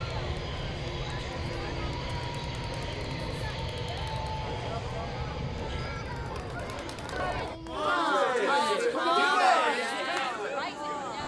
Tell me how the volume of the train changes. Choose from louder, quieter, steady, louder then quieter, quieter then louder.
quieter.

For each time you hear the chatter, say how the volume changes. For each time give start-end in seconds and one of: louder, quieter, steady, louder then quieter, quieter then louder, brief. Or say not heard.
0.0-11.2 louder.